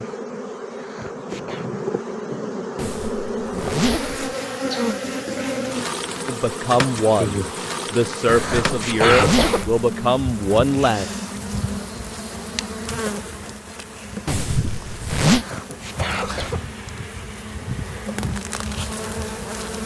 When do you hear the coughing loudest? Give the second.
9 s.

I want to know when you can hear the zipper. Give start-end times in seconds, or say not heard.
2.8-4.3, 8.2-9.8, 14.2-15.4.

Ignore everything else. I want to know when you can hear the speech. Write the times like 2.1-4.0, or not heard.
6.2-11.1.